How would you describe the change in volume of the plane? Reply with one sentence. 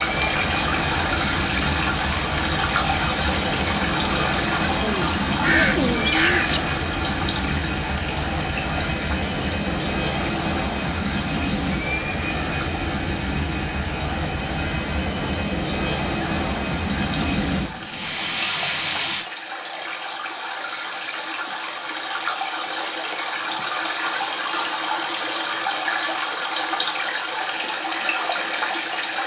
The loudness of the plane stays about the same.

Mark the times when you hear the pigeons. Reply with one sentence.
You can hear the pigeons from 4.8 to 6.6 s.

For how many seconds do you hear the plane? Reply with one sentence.
The plane can be heard for 19 seconds in total.